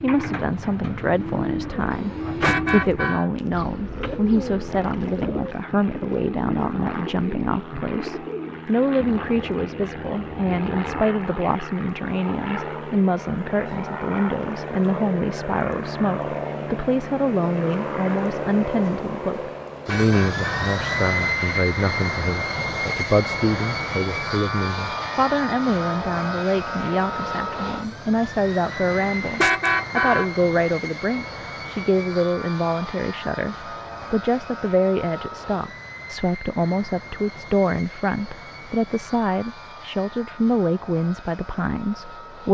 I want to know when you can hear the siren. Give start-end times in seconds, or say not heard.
not heard.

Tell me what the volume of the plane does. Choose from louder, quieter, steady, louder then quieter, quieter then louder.
louder then quieter.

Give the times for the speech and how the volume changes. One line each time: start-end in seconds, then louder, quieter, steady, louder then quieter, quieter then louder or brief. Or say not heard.
0.0-42.4 steady.